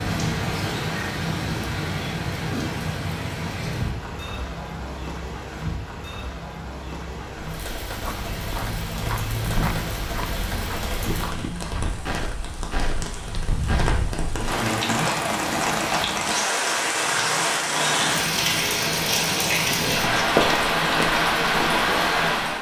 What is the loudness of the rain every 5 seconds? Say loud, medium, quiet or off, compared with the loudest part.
medium, quiet, medium, loud, loud.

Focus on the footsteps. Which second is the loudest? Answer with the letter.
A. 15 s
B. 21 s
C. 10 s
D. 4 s
C.